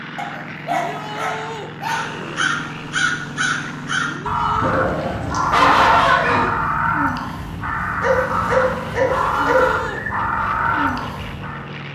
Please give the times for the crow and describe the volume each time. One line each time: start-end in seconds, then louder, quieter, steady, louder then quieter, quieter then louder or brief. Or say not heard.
1.8-11.7 steady.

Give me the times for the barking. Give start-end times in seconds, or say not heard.
0.1-2.0, 4.6-6.5, 8.0-9.8.